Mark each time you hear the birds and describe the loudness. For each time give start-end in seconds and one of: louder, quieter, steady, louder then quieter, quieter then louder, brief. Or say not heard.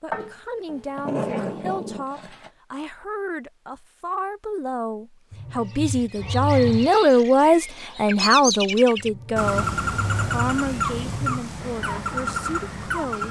5.7-13.2 louder.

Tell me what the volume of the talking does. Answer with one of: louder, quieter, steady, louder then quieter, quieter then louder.
louder then quieter.